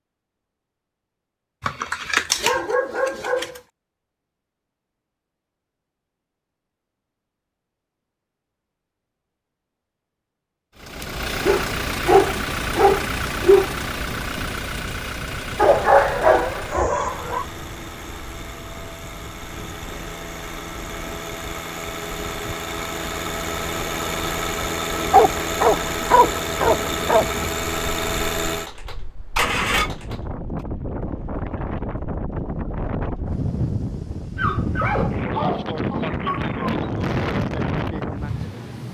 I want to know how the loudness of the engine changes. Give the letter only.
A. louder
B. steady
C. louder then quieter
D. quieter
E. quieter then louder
E.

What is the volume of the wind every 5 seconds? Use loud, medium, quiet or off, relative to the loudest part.
off, off, off, quiet, quiet, medium, loud, loud.